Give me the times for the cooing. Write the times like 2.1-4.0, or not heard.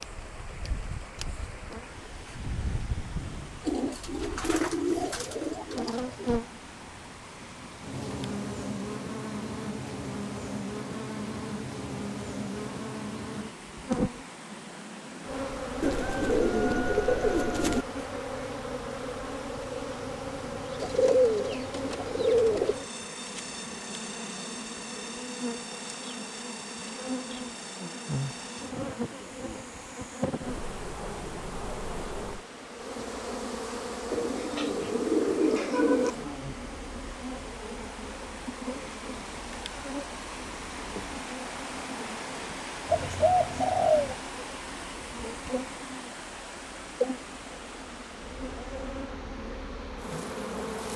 3.6-6.3, 15.8-17.9, 20.8-22.8, 34.1-36.1, 42.9-44.1.